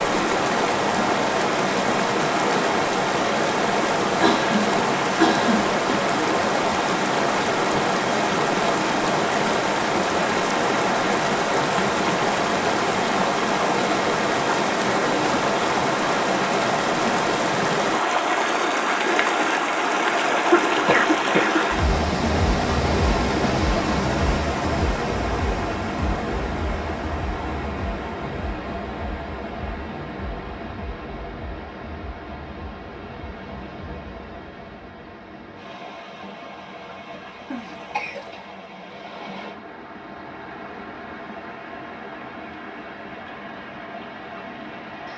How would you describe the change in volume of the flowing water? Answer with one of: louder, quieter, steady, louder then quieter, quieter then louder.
quieter.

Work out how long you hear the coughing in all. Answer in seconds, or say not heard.
4 s.